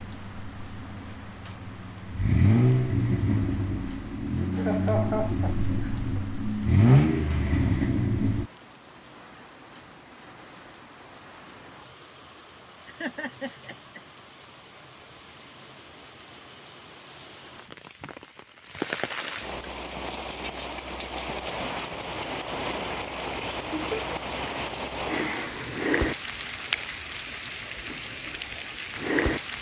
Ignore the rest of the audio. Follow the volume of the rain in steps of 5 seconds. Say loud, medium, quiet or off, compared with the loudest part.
quiet, quiet, quiet, medium, loud, loud.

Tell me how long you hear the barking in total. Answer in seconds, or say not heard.
not heard.